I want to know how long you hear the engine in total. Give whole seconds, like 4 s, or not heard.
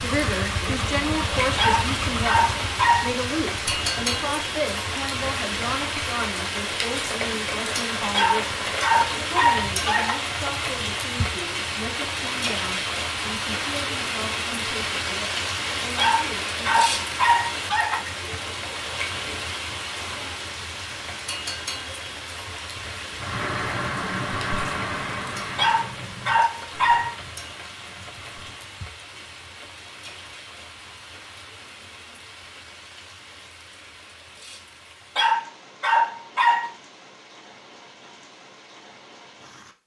10 s.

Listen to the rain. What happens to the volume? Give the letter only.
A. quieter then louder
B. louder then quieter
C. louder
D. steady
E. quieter
E.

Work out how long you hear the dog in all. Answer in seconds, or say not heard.
9 s.